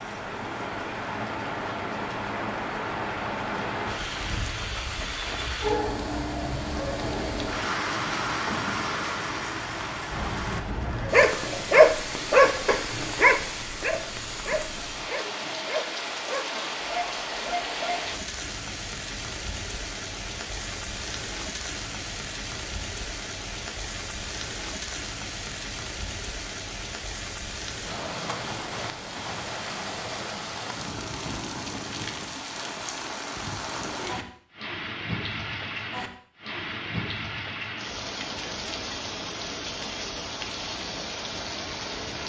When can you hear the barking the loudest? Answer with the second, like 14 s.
12 s.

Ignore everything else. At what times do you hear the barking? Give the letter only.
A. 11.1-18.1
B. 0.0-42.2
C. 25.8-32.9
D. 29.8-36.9
A.